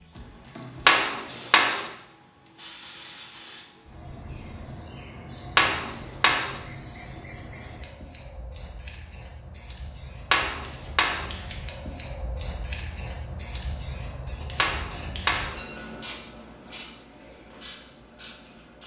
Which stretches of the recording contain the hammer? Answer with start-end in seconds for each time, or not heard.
0.8-1.9, 5.5-6.5, 10.3-11.3, 14.6-15.6.